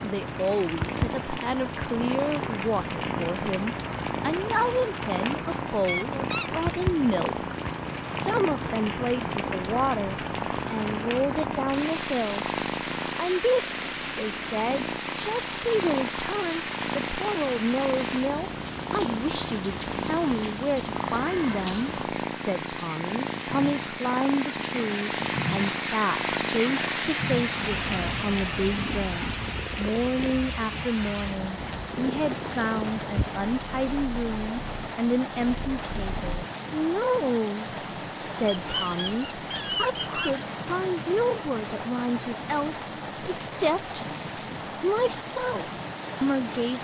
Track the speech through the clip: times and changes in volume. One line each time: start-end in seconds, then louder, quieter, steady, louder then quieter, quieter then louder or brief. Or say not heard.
0.0-12.5 steady
13.2-46.7 steady.